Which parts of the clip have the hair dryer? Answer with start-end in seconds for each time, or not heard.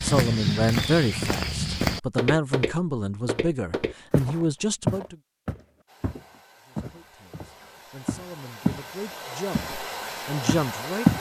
5.8-11.1.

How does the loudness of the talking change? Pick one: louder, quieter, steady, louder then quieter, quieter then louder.
quieter then louder.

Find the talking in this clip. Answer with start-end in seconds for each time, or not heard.
0.0-5.2, 6.7-11.1.